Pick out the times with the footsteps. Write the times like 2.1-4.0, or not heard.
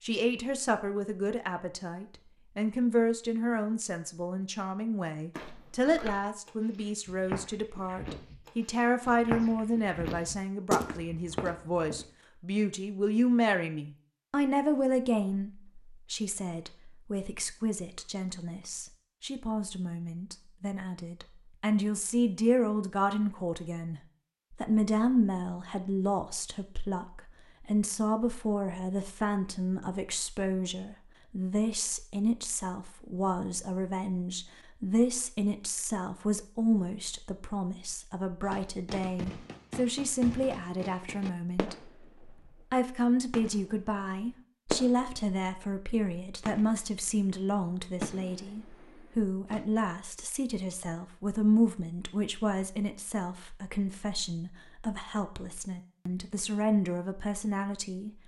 5.3-12.1.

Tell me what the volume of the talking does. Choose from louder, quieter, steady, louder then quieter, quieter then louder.
steady.